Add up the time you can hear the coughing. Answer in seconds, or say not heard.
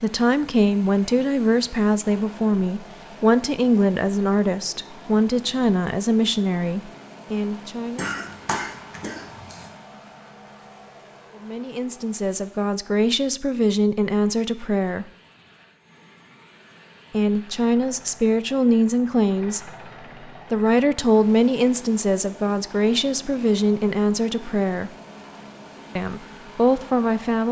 2 s.